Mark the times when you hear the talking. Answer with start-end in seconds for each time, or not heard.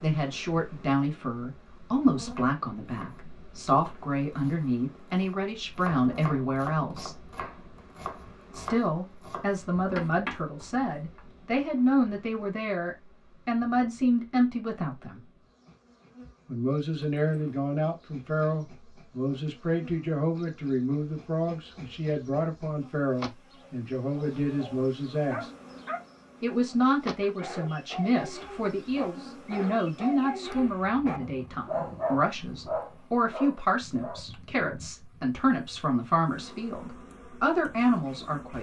0.0-7.2, 8.5-15.2, 16.4-25.5, 26.4-38.5.